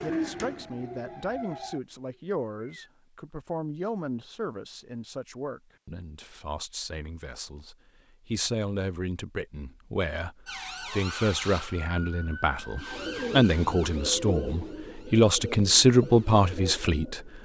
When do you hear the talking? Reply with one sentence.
You can hear the talking from 0.0 to 17.2 s.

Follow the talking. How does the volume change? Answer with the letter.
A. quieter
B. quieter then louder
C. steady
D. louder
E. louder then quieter
D.